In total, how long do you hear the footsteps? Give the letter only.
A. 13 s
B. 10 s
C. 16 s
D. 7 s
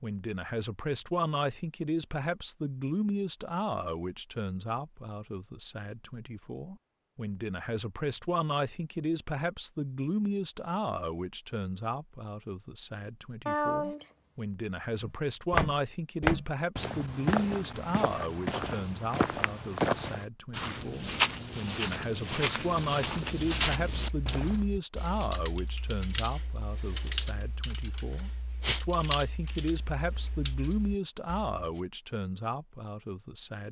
B.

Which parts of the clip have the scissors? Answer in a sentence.
You can hear the scissors from 13.4 to 14.1 s.